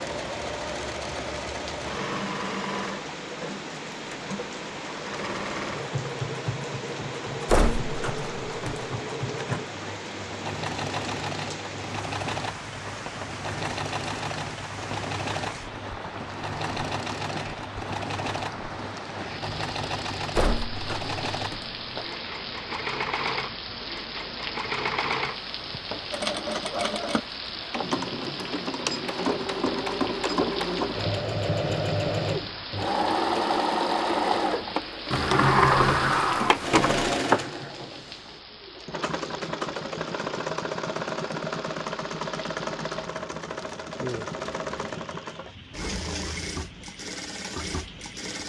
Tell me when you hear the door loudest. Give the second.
36 s.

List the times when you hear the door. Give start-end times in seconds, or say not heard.
7.5-8.8, 20.4-22.1, 35.1-37.4.